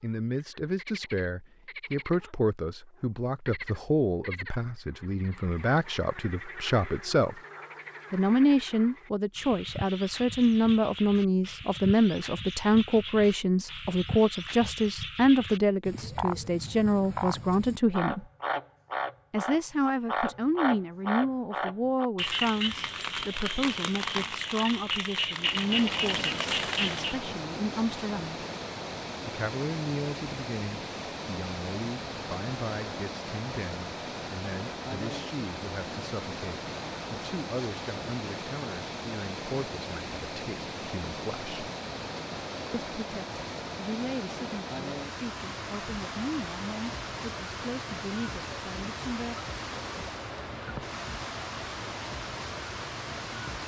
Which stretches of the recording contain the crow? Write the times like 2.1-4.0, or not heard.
not heard.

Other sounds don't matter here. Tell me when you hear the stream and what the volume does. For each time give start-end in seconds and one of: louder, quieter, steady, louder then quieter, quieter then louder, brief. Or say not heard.
25.3-53.6 steady.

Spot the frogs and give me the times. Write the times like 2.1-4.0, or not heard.
0.0-27.2.